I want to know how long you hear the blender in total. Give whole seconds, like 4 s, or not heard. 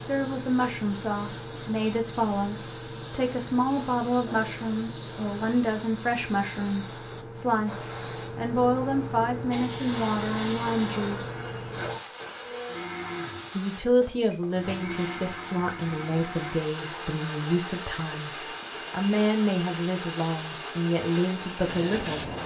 13 s.